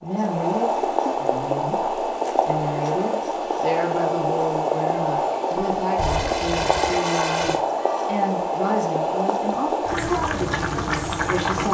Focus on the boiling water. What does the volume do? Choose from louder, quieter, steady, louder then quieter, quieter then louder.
steady.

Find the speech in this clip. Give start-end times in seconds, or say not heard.
0.0-11.6.